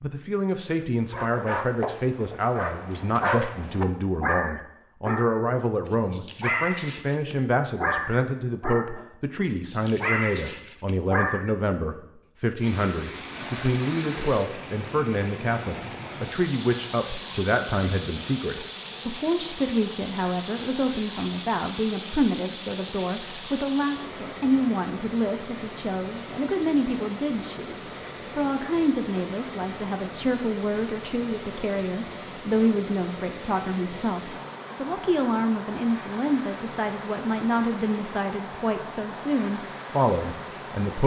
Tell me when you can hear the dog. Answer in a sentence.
The dog can be heard from 1.1 to 9.1 s and from 9.7 to 11.5 s.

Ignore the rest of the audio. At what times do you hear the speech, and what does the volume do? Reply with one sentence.
You can hear the speech from 0.0 to 41.0 s, at a steady volume.